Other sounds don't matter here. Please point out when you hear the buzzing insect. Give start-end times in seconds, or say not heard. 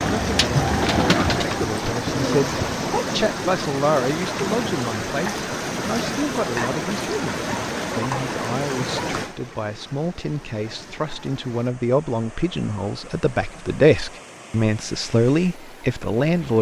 not heard.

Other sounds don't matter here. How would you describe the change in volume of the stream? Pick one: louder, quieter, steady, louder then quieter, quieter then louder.
quieter.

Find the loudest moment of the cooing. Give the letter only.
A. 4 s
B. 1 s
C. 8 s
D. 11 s
B.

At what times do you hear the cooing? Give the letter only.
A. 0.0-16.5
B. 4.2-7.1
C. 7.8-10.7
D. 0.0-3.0
D.